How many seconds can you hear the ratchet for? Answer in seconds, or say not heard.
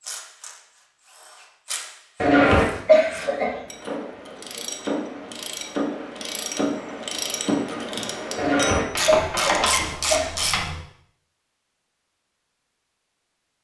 11 s.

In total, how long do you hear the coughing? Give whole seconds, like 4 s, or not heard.
3 s.